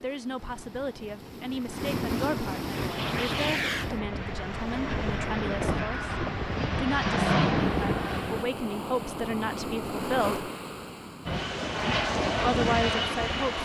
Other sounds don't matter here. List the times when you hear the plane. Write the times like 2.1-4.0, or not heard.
2.7-8.4, 11.2-13.5.